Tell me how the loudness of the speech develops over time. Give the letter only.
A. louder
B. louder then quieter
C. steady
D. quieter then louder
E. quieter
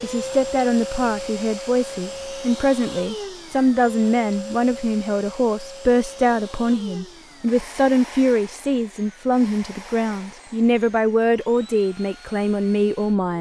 C.